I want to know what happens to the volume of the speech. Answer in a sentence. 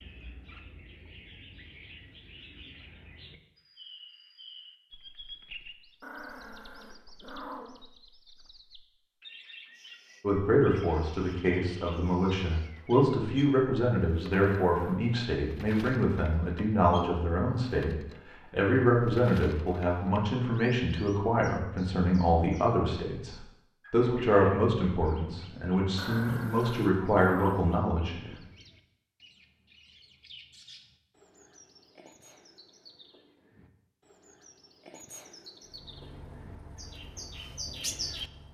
The loudness of the speech stays about the same.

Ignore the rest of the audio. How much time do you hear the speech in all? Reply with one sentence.
You can hear the speech for 18 seconds altogether.